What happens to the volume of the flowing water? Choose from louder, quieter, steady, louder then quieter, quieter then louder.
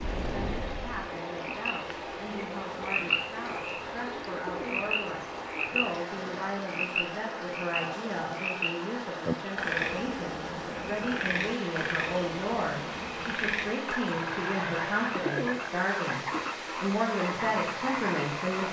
steady.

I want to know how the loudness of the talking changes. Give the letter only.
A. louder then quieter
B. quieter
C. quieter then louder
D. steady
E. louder
E.